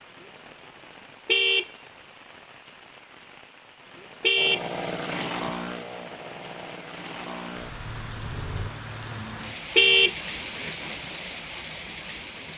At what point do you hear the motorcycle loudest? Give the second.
5 s.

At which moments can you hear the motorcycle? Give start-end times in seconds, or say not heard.
4.3-8.7.